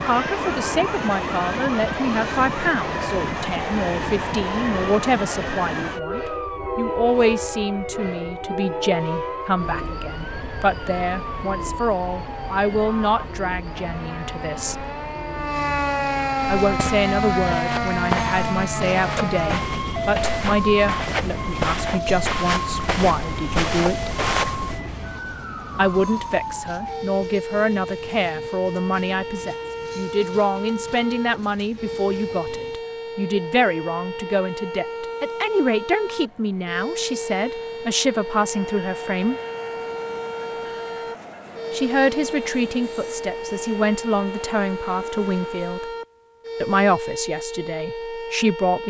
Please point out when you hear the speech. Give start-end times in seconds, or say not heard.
0.1-14.8, 16.4-24.1, 25.8-39.4, 41.7-45.9, 46.6-48.8.